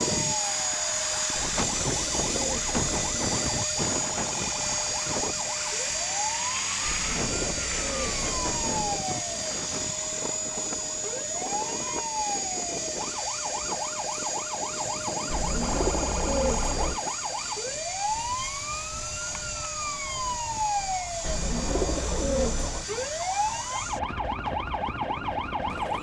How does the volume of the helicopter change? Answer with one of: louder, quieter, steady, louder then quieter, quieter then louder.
quieter.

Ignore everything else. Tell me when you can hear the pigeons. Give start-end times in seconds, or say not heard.
1.4-3.4, 6.8-9.0, 15.2-17.0, 21.2-22.9.